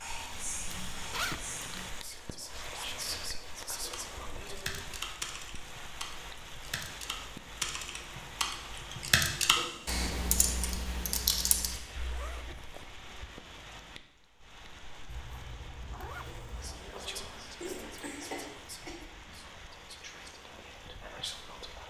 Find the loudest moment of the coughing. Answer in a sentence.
The volume of the coughing peaks at 18 seconds.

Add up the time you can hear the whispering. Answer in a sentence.
You can hear the whispering for 10 seconds altogether.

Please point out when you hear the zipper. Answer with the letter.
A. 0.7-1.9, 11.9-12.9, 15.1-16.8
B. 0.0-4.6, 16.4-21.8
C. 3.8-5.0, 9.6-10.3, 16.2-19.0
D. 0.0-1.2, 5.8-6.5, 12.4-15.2
A.